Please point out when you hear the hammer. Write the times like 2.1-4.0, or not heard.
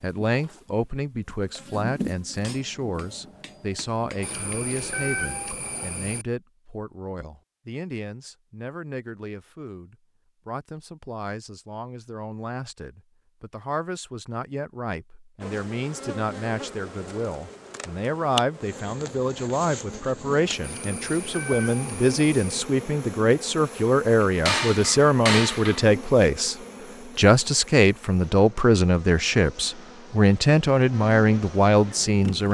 2.4-4.8, 24.4-25.9.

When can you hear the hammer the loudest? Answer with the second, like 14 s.
25 s.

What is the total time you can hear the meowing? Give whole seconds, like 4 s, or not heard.
4 s.